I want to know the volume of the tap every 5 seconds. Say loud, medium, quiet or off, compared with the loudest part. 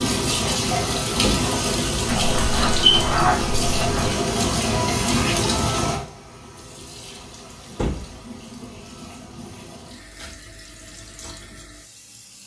loud, medium, quiet.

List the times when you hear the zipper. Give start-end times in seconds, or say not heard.
2.0-4.1.